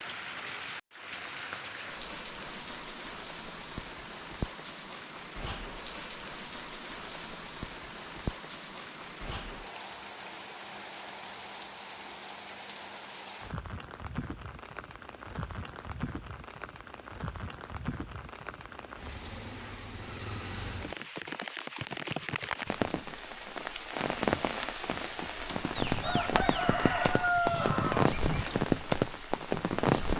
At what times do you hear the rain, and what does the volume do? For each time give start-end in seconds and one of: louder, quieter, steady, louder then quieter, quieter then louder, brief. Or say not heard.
0.0-30.1 louder.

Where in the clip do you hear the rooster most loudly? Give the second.
27 s.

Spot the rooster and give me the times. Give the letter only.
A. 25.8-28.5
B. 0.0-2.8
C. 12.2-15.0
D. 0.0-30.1
A.